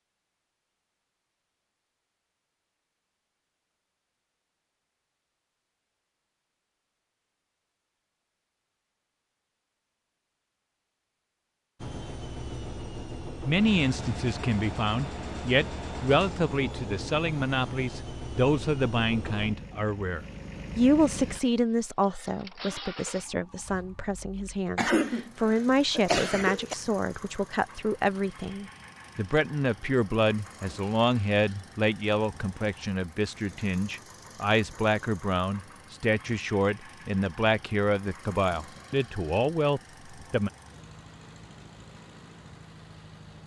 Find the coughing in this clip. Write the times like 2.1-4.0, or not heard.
24.8-26.8.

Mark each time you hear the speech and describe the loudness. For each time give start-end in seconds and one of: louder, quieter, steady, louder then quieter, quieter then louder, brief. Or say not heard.
13.4-40.5 steady.